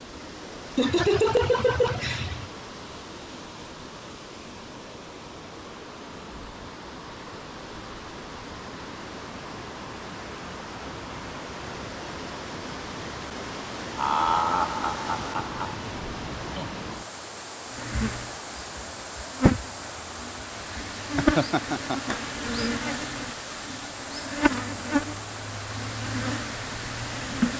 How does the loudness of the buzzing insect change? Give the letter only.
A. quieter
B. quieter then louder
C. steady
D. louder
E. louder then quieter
A.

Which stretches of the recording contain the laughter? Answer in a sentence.
The laughter can be heard from 0.8 to 2.5 s, from 13.9 to 15.8 s and from 21.1 to 22.1 s.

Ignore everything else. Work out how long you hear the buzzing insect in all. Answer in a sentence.
You can hear the buzzing insect for 10 seconds altogether.